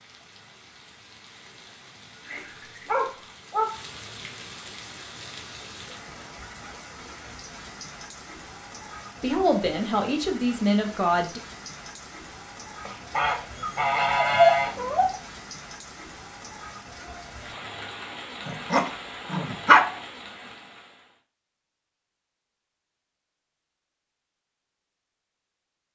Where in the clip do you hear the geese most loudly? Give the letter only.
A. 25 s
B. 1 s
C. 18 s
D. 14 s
D.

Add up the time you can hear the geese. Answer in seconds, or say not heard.
2 s.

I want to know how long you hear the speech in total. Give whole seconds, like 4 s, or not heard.
2 s.